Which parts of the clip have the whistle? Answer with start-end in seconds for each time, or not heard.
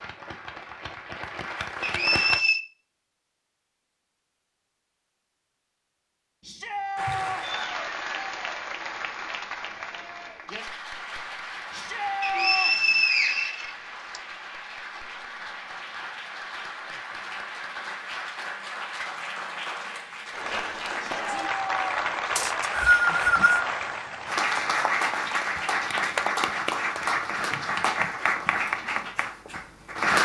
1.8-2.6, 12.2-14.2, 22.4-23.6.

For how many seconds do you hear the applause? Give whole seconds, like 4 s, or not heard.
26 s.